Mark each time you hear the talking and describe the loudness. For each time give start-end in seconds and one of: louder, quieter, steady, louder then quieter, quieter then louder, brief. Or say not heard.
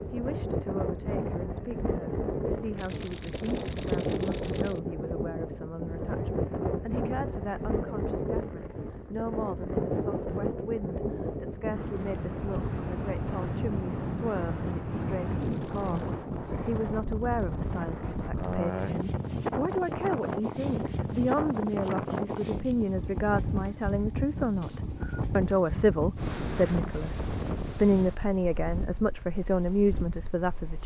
0.1-30.8 louder.